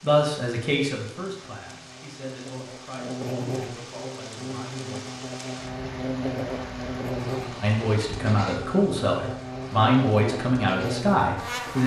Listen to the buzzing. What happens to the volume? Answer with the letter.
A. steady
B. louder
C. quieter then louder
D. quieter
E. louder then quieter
B.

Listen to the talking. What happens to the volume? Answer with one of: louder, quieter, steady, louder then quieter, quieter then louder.
quieter then louder.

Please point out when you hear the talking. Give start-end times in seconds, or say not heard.
0.0-5.0, 7.6-11.8.